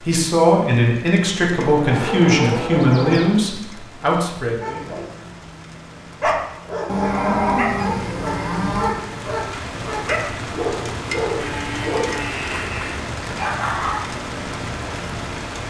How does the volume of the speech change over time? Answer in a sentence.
The volume of the speech goes down.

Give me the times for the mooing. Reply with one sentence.
You can hear the mooing from 1.6 to 3.5 s, from 6.8 to 8.9 s and from 11.3 to 13.0 s.